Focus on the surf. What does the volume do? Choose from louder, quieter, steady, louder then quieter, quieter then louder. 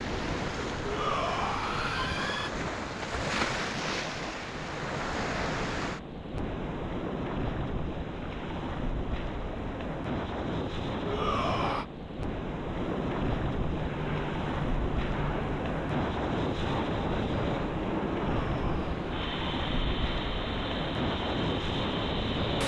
steady.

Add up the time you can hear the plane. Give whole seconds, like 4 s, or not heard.
9 s.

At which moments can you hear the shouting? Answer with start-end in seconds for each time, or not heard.
0.8-2.5, 11.1-11.8, 18.3-18.9.